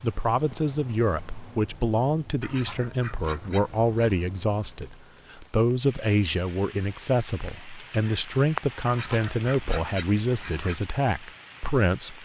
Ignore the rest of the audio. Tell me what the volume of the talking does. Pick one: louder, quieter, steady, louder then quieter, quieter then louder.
steady.